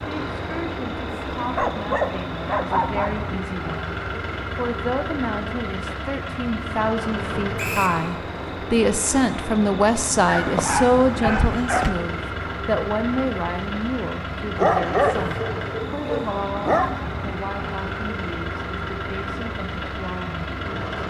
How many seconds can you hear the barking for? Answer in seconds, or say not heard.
6 s.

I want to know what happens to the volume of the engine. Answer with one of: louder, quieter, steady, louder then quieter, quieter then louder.
steady.